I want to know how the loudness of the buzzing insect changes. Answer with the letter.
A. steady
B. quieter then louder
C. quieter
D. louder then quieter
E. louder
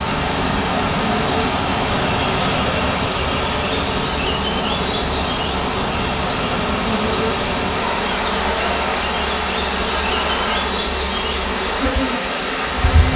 A.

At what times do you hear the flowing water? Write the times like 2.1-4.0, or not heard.
0.0-13.1.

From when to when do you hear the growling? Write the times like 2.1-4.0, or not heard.
not heard.